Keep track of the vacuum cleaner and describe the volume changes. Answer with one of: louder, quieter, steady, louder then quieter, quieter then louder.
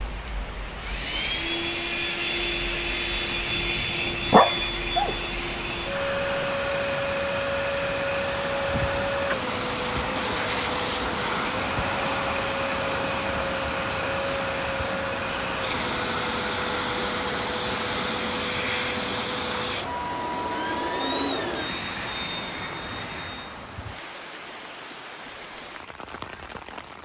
steady.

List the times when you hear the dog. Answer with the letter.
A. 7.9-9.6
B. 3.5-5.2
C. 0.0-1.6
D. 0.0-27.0
B.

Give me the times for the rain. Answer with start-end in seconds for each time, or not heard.
0.0-27.0.